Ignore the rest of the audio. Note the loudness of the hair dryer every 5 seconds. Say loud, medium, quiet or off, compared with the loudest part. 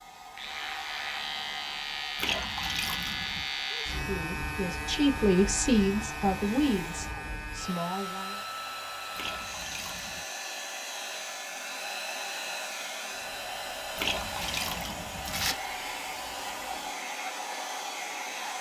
medium, medium, loud, loud.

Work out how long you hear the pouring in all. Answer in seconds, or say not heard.
4 s.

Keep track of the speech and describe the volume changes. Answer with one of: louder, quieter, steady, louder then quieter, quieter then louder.
louder then quieter.